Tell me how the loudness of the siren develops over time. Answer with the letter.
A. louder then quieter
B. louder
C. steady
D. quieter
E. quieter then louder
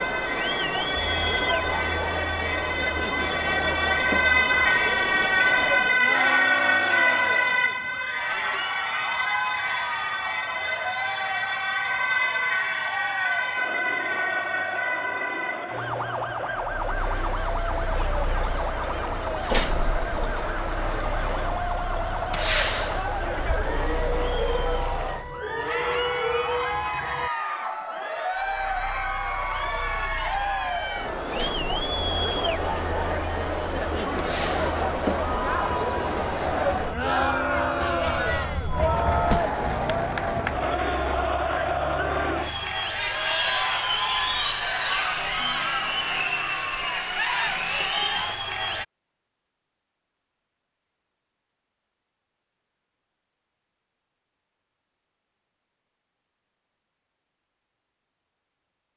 D.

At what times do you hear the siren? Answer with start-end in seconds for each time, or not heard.
0.0-27.3.